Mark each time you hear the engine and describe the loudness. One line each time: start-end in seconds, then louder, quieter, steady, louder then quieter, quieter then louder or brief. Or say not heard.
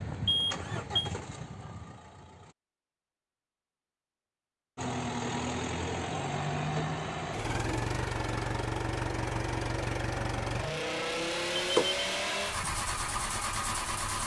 0.0-2.5 brief
4.8-14.2 steady.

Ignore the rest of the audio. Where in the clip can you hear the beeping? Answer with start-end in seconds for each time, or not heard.
0.2-1.1, 11.6-12.0.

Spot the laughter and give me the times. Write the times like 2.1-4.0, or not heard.
not heard.